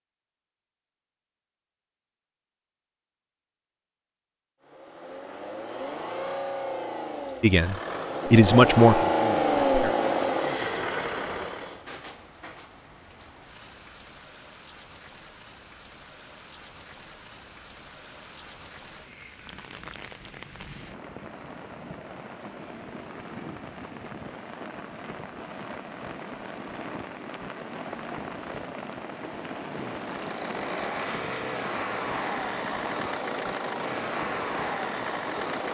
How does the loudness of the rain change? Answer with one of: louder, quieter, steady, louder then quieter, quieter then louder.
louder.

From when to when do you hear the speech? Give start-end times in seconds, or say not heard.
7.4-9.9.